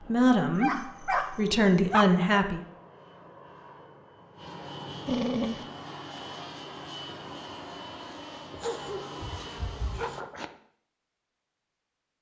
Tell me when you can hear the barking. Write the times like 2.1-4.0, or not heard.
0.6-2.2, 5.0-5.7, 8.5-10.5.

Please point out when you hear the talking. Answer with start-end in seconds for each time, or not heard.
0.1-2.6.